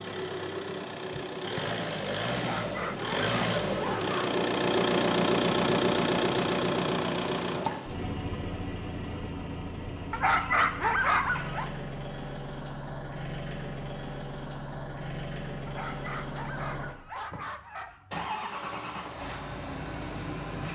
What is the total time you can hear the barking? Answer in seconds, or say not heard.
6 s.